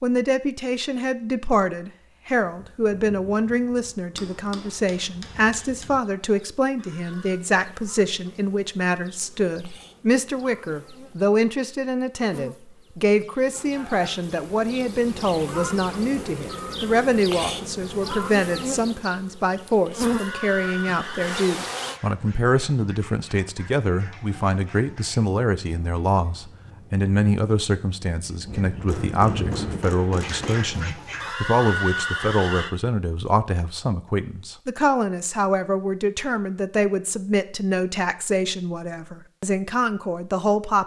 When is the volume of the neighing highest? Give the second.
32 s.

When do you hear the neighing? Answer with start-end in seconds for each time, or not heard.
6.8-7.4, 20.0-21.4, 31.2-32.8.